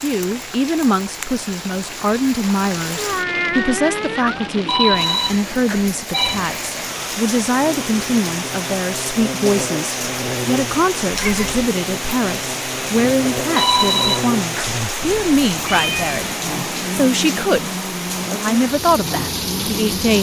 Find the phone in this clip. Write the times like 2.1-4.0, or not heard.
4.7-6.4, 13.6-14.8.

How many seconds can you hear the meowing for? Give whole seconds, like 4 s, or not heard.
3 s.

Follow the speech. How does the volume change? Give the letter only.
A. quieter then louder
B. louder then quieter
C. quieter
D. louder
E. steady
E.